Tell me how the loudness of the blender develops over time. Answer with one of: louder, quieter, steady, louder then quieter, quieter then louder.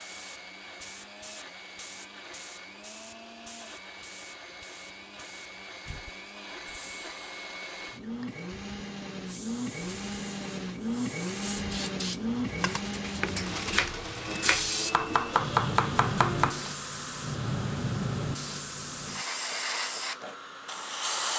louder then quieter.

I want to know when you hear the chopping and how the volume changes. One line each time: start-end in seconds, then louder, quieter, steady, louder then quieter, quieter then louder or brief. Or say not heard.
12.4-16.7 louder.